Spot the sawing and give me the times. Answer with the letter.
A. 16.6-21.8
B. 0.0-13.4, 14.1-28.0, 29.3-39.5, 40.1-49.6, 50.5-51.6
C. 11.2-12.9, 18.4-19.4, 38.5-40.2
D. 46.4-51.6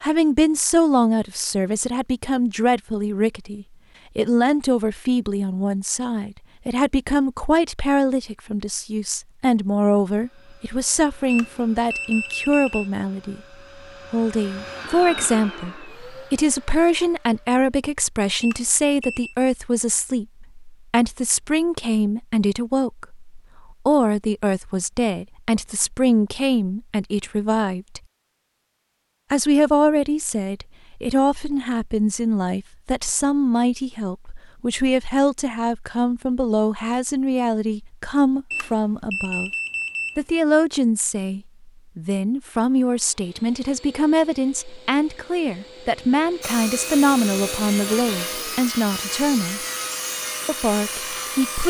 D.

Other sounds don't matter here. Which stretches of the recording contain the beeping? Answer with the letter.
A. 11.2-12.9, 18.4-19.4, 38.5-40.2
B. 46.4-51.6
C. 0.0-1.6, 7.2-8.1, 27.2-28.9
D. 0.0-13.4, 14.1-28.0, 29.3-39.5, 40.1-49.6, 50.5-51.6
A.